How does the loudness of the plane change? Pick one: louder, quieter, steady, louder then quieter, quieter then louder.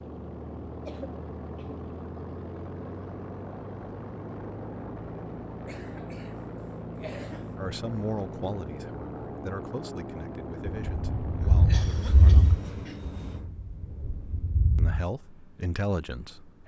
quieter.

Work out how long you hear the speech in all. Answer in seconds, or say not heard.
7 s.